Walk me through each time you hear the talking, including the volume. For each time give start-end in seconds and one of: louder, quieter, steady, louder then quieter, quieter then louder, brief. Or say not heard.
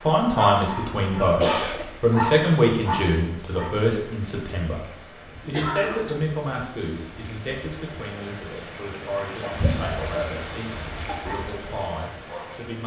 0.0-12.8 quieter.